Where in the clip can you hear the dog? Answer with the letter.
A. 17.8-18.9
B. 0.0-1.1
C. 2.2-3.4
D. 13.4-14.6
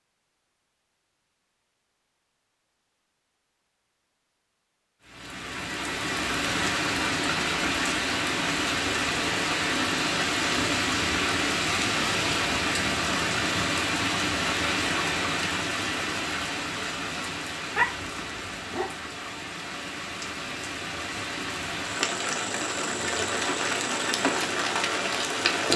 A.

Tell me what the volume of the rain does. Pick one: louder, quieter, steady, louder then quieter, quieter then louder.
quieter then louder.